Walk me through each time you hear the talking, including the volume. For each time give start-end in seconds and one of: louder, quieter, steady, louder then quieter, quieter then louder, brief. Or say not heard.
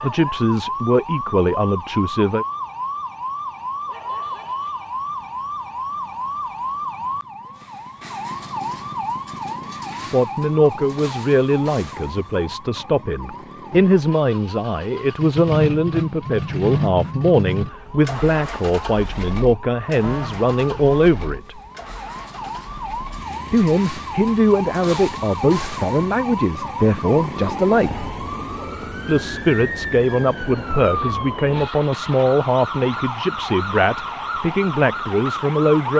0.0-2.5 brief
10.1-21.6 steady
23.5-28.1 steady
29.1-35.9 steady.